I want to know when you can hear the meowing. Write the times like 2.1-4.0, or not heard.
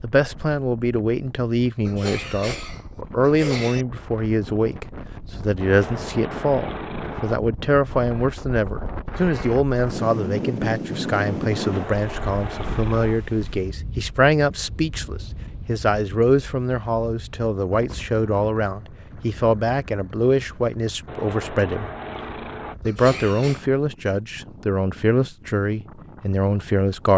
5.6-7.4, 11.5-13.2, 21.1-22.8.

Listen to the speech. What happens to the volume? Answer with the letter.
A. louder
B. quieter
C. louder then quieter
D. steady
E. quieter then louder
D.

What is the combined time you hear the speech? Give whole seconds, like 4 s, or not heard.
26 s.